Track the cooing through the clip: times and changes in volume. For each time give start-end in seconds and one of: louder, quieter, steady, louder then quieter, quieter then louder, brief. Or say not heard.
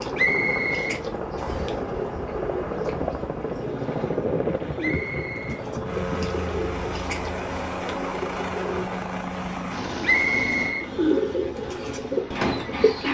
0.0-9.0 steady
10.8-13.1 brief.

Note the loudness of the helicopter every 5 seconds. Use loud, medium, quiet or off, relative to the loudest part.
loud, loud, medium.